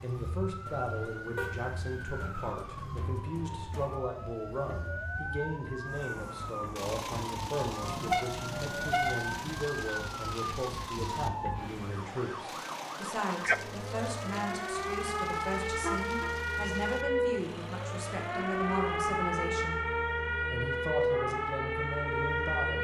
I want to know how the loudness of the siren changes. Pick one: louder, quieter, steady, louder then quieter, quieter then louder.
louder.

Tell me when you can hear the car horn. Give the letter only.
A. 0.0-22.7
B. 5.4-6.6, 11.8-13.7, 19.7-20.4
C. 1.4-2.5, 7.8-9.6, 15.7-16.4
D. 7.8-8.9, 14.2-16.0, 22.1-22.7
C.